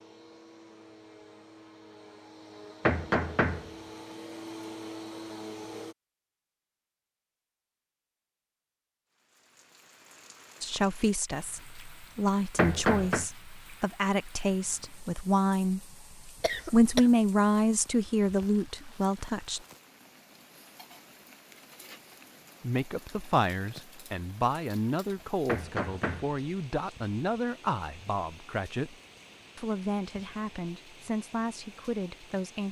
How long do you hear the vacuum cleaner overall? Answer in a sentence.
You can hear the vacuum cleaner for 6 seconds altogether.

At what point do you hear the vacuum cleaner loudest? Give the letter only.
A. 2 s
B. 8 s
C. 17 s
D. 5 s
D.